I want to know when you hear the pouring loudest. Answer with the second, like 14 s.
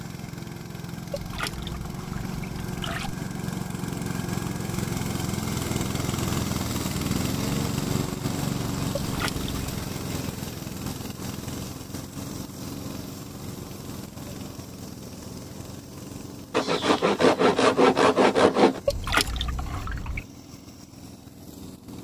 19 s.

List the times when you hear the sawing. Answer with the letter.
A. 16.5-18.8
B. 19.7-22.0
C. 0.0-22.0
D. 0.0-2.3
A.